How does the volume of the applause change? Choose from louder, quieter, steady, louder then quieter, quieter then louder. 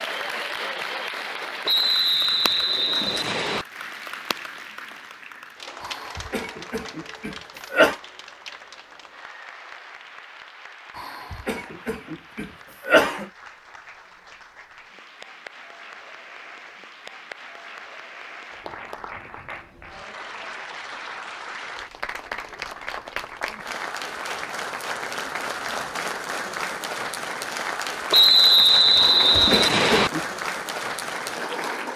quieter then louder.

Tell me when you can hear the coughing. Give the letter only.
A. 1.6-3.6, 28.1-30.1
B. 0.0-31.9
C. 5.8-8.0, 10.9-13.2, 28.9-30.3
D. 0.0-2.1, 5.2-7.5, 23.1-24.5
C.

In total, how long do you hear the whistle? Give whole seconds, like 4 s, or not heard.
4 s.